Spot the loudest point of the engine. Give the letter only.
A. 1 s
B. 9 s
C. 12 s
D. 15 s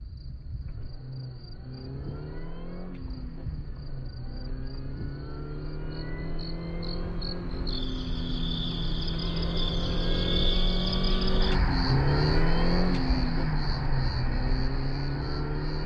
C.